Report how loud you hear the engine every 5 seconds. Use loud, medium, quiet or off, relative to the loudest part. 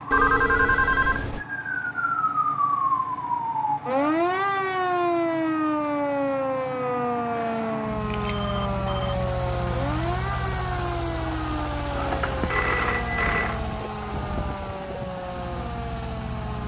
medium, loud, loud, loud.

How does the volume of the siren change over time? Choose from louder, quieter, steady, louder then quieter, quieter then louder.
quieter.